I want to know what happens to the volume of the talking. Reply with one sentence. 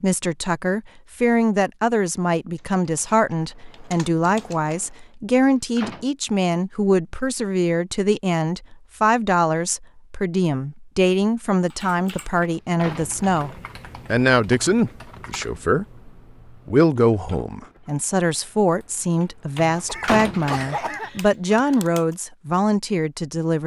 The loudness of the talking stays about the same.